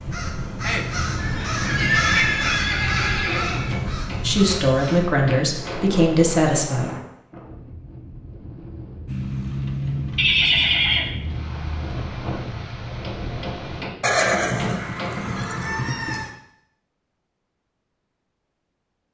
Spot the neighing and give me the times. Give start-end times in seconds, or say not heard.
1.1-3.8, 10.2-11.1, 14.0-16.3.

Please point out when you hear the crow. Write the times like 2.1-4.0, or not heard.
0.0-5.2.